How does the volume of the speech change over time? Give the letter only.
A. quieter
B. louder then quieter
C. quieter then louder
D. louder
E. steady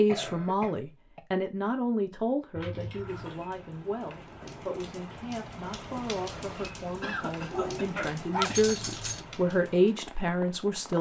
C.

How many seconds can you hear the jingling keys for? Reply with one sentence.
The jingling keys can be heard for 2 seconds in total.